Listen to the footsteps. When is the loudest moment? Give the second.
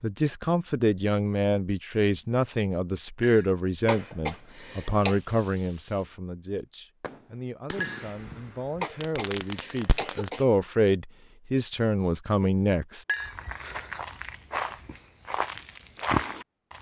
16 s.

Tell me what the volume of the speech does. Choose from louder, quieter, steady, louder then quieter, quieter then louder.
quieter then louder.